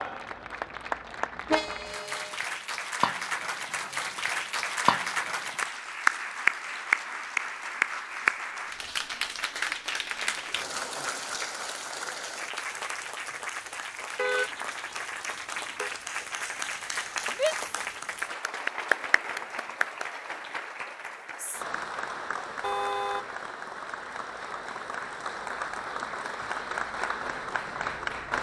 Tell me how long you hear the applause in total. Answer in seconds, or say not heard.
28 s.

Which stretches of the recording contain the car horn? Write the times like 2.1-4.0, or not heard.
1.4-2.4, 14.2-15.9, 22.6-23.3.